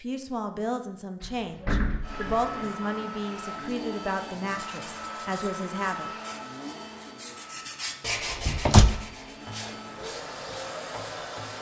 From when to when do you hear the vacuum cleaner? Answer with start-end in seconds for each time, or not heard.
2.0-11.5.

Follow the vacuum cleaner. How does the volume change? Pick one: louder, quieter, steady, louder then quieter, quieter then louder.
quieter then louder.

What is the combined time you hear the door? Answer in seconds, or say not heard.
2 s.